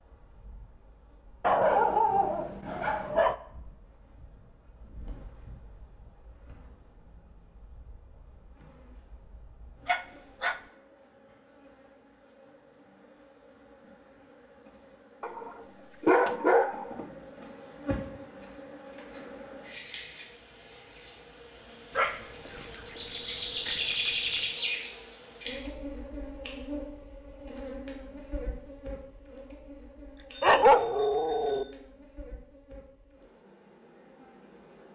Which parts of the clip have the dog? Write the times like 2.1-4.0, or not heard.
1.4-3.4, 9.8-10.6, 15.2-17.1, 21.9-24.4, 30.4-31.6.